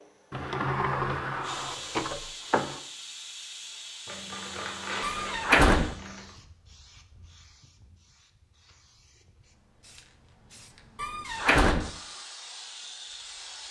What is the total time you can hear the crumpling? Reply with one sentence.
The crumpling can be heard for 2 seconds in total.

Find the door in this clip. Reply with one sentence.
The door can be heard from 0.3 to 2.8 s, from 5.0 to 6.0 s and from 10.9 to 11.9 s.